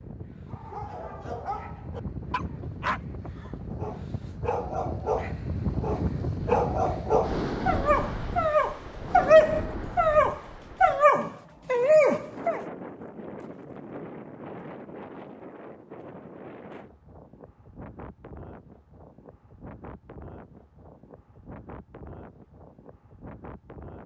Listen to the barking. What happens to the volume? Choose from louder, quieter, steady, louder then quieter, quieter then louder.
louder.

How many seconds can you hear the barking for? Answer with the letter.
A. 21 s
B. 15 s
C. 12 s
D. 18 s
C.